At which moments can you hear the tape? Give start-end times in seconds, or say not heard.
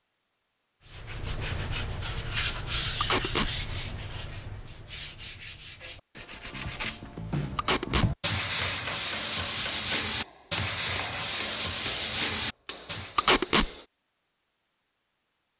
3.0-3.5, 7.5-8.1, 13.2-13.7.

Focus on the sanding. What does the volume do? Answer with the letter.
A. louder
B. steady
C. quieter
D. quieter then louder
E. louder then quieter
D.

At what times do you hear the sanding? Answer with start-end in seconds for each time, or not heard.
0.8-13.2.